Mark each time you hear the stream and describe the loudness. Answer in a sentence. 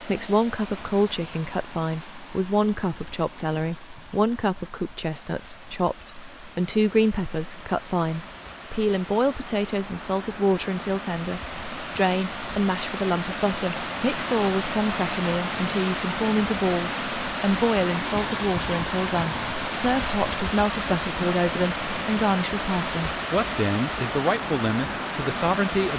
You can hear the stream from 0.0 to 25.9 s, getting louder.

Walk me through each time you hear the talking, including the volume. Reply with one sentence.
The talking can be heard from 0.0 to 25.9 s, at a steady volume.